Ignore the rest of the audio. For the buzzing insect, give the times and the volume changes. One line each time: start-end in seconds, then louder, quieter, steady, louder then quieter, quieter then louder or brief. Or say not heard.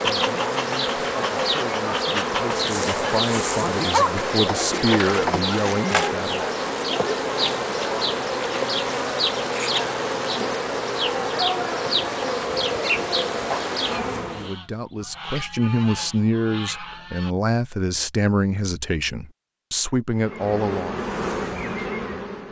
0.0-14.6 steady
20.1-22.4 brief.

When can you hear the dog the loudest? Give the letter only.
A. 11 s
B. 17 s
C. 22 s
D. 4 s
D.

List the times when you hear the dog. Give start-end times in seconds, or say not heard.
2.5-4.1.